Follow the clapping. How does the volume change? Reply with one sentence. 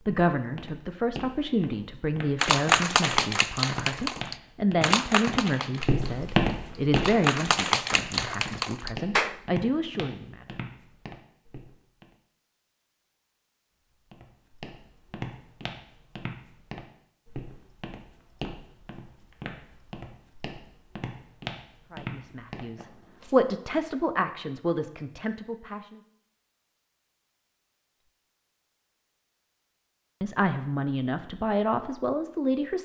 The volume of the clapping goes down, then up.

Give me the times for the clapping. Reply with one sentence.
The clapping can be heard from 2.4 to 9.3 s.